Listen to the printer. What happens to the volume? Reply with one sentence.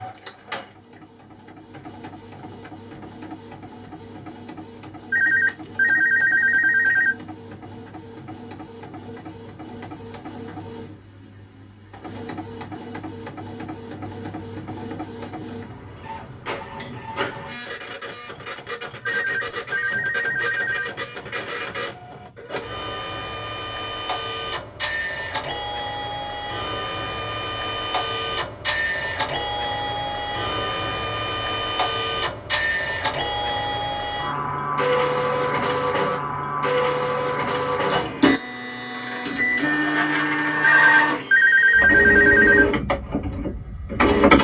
The loudness of the printer goes up.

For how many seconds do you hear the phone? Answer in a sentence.
You can hear the phone for 6 seconds altogether.